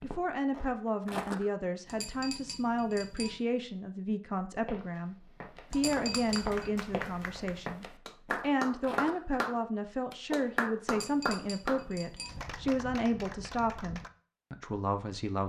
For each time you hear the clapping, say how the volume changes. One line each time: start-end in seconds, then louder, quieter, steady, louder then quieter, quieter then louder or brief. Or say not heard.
5.8-14.1 louder then quieter.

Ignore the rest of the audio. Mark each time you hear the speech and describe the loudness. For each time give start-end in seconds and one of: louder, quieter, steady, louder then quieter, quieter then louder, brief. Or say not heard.
0.0-15.4 steady.